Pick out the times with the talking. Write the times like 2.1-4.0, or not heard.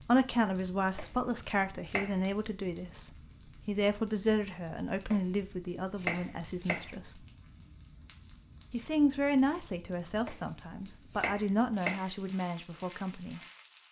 0.0-7.2, 8.7-13.4.